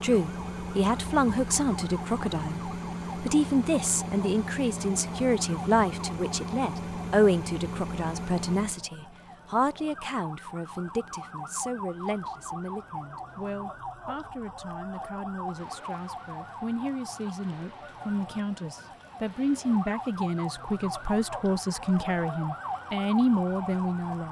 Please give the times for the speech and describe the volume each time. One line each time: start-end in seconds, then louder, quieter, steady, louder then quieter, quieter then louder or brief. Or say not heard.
0.0-24.2 quieter then louder.